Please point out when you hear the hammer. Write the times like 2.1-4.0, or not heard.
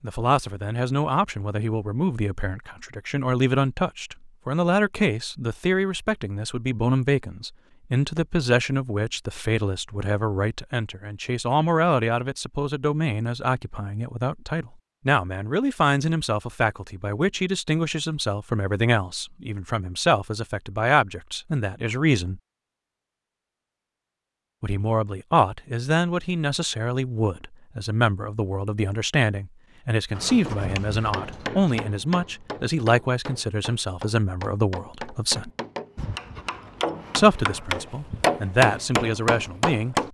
30.1-40.0.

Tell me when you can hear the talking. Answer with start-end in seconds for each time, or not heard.
0.0-22.4, 24.6-35.5, 37.1-40.0.